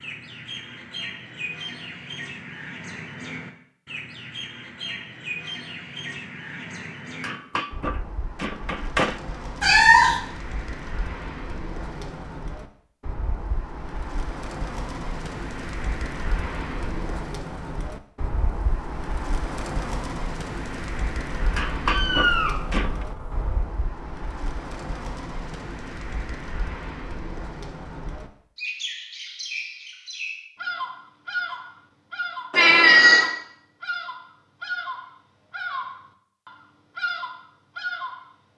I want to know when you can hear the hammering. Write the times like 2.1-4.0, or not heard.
7.2-9.2, 21.6-23.1.